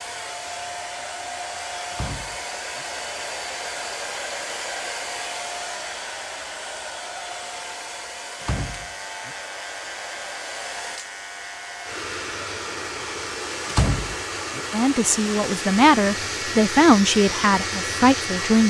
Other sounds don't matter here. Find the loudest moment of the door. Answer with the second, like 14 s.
14 s.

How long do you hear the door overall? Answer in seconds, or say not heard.
3 s.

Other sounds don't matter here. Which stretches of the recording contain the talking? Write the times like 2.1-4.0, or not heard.
14.7-18.6.